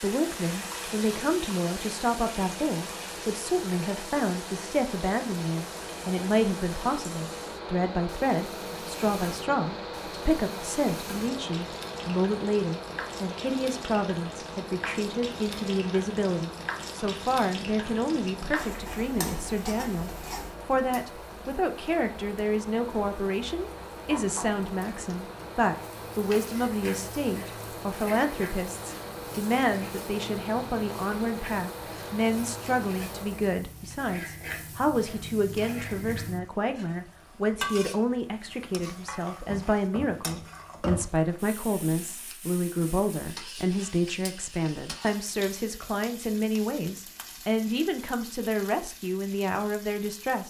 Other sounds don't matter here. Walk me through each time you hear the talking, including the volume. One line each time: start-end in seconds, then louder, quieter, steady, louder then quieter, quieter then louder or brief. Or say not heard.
0.0-50.4 steady.